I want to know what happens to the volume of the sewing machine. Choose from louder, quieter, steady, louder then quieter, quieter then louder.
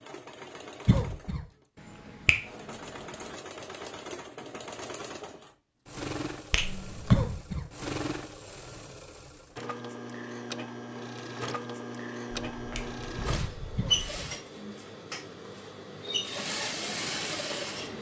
louder.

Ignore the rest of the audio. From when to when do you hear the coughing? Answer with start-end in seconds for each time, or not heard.
0.8-1.4, 7.1-7.7, 13.8-14.3.